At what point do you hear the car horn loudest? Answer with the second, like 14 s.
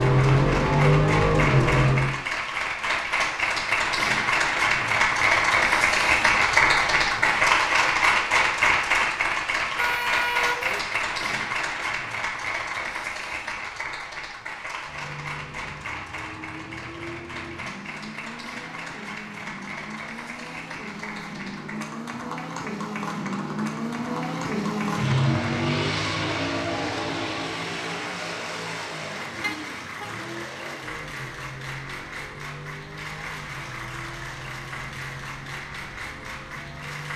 10 s.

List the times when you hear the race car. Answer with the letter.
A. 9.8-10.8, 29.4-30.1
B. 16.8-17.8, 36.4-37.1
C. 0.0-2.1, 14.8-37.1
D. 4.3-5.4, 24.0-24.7
C.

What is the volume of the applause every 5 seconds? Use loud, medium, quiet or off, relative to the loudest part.
medium, loud, medium, quiet, quiet, quiet, quiet, quiet.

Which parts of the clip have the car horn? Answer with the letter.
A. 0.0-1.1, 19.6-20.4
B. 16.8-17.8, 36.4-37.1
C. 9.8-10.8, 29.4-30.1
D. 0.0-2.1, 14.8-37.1
C.